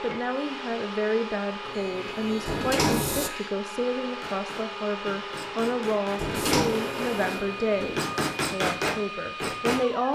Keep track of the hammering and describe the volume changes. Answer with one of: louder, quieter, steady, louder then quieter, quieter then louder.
louder.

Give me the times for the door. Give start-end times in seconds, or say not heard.
2.5-3.3, 6.2-6.8.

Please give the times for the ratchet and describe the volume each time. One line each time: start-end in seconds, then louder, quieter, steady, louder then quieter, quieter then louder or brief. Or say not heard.
not heard.